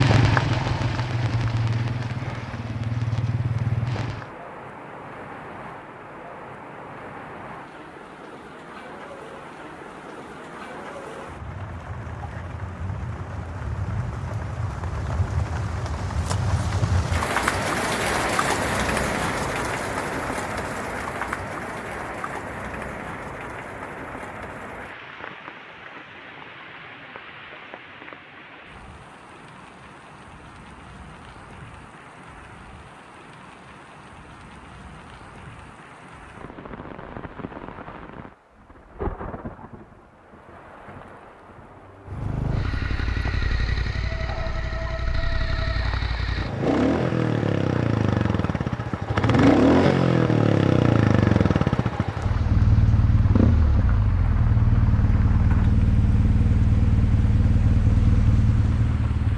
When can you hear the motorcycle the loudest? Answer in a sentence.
The loudest moment of the motorcycle is at 50 seconds.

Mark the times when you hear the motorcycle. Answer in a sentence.
The motorcycle can be heard from 0.0 to 4.3 s and from 42.1 to 59.3 s.